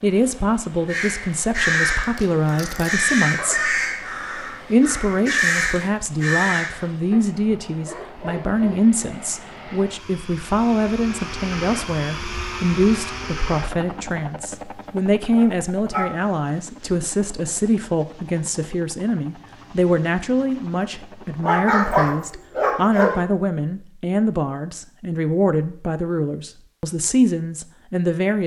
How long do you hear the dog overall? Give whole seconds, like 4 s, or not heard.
6 s.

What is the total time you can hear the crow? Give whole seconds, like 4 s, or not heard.
6 s.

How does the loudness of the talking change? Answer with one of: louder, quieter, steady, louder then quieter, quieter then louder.
steady.